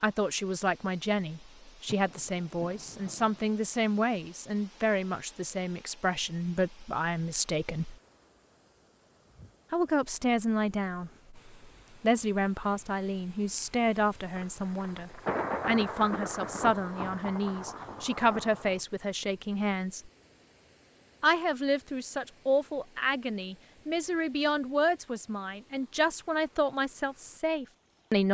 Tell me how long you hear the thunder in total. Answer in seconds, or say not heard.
6 s.